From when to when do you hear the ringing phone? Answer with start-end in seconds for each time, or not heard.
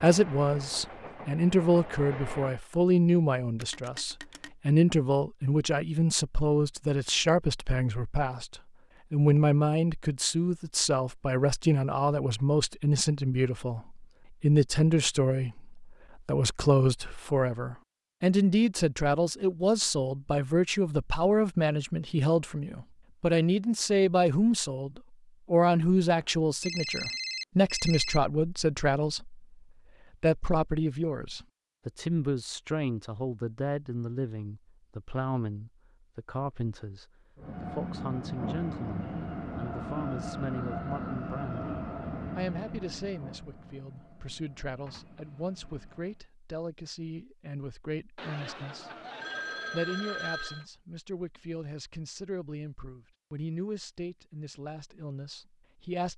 3.5-4.5, 26.1-28.2, 48.1-50.6.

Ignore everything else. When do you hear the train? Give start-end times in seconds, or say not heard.
0.0-2.6, 37.4-46.2.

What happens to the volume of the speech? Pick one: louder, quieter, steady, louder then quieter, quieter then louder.
quieter.